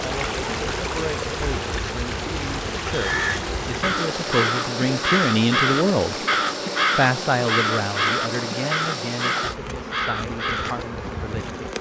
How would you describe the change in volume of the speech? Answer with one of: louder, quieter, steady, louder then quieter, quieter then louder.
louder then quieter.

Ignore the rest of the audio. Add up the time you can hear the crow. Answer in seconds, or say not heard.
8 s.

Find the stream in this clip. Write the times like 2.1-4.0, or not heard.
0.0-9.6.